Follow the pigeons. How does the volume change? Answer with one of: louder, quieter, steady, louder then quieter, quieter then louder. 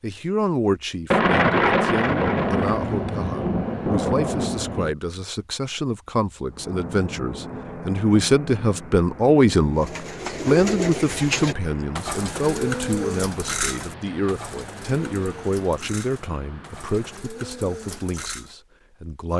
quieter.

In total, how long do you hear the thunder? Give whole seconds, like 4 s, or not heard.
4 s.